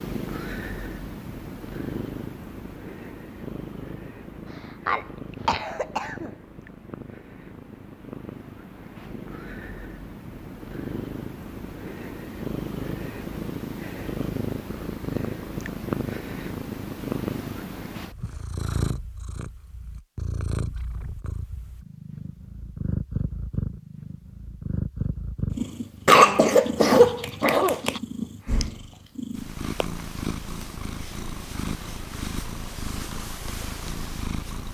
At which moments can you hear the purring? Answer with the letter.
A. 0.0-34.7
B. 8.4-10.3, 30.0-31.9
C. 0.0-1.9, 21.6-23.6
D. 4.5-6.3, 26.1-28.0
A.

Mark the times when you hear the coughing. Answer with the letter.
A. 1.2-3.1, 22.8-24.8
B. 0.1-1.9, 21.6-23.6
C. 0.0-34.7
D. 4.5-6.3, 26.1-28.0
D.